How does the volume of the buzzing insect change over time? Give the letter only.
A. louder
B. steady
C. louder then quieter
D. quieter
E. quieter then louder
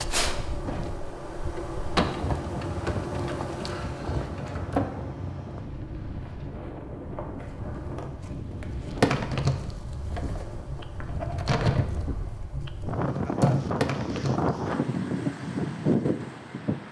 E.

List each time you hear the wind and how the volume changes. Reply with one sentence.
You can hear the wind from 0.0 to 16.8 s, getting louder.